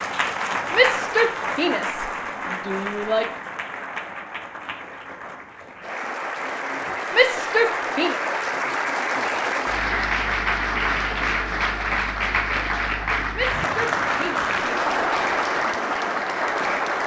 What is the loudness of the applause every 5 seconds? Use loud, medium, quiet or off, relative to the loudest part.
medium, loud, loud, loud.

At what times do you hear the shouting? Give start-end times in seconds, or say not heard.
0.7-3.4, 7.1-8.2, 13.3-14.4.